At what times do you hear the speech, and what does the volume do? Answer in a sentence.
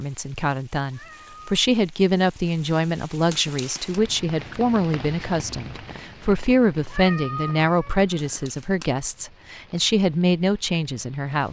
The speech can be heard from 0.0 to 11.4 s, at a steady volume.